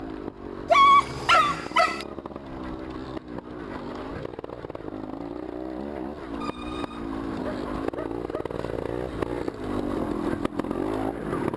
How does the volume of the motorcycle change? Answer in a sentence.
The volume of the motorcycle goes up.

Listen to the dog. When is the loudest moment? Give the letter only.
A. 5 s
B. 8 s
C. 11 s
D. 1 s
D.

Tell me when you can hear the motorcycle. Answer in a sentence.
You can hear the motorcycle from 0.0 to 11.5 s.